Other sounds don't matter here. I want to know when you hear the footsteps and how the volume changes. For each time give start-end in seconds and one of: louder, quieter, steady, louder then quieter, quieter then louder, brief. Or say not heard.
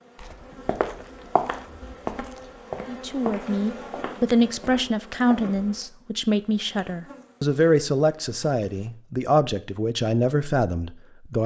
0.1-5.6 quieter.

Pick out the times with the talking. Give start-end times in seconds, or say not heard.
2.9-11.4.